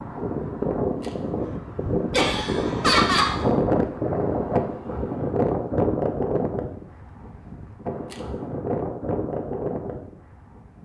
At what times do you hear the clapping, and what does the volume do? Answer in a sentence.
You can't hear the clapping here.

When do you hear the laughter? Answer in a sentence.
The laughter can be heard from 2.1 to 3.3 s.